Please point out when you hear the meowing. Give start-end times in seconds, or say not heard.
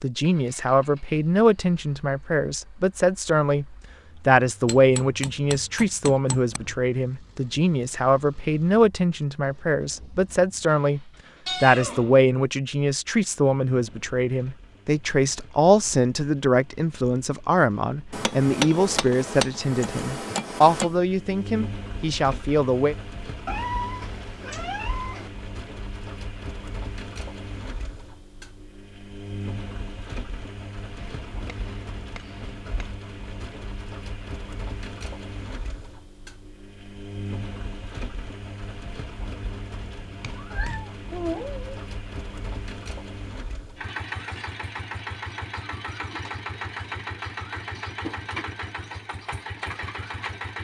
11.4-12.2, 23.4-25.3, 40.3-41.6.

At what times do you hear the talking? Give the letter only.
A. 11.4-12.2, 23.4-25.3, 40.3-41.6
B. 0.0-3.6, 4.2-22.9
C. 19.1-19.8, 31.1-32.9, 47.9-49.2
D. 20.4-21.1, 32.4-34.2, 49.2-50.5
B.